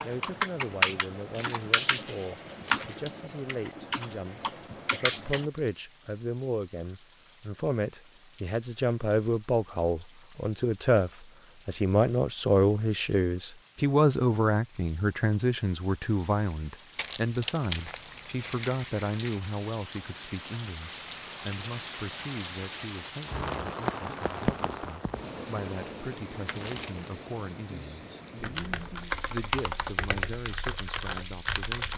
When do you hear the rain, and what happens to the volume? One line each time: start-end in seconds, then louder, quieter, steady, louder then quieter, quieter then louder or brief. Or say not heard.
0.0-31.9 louder then quieter.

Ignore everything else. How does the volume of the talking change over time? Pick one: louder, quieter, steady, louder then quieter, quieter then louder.
louder then quieter.